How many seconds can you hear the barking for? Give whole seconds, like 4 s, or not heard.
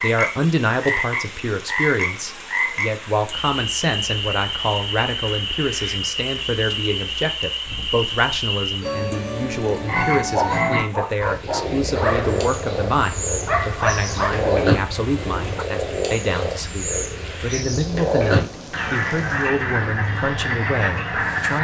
5 s.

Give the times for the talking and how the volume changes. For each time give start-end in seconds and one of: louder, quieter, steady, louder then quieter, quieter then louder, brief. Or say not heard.
0.0-21.5 steady.